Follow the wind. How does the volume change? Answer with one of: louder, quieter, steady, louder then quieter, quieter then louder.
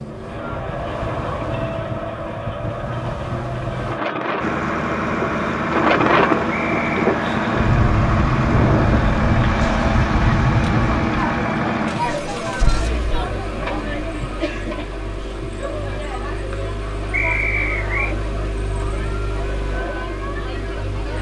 louder.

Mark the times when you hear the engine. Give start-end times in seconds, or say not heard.
4.4-21.1.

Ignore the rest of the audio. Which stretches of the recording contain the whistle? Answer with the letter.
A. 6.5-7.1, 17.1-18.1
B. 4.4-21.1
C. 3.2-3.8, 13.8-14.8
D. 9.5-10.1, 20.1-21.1
A.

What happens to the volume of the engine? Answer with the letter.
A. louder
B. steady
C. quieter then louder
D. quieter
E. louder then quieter
D.